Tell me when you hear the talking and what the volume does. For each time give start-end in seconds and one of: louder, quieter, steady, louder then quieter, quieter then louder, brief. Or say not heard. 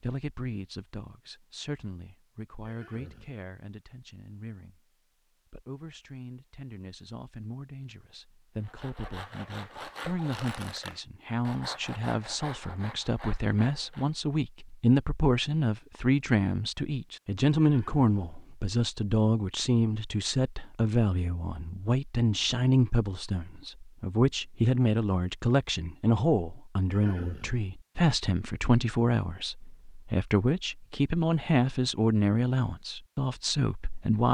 0.0-34.2 louder.